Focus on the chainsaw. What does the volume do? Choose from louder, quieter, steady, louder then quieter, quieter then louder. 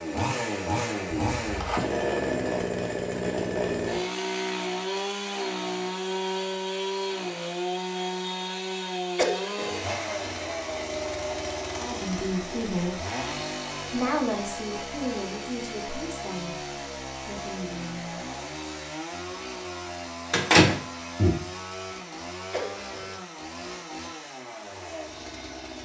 quieter.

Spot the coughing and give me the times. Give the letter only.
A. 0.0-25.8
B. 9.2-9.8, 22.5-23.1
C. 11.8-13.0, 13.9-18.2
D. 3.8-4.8
B.